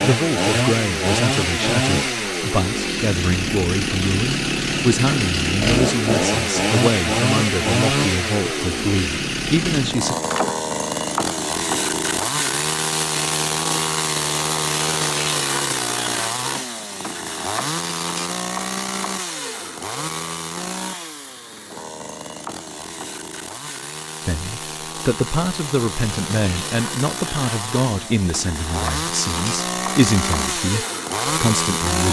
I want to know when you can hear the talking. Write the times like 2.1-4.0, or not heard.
0.0-10.2, 24.2-32.0.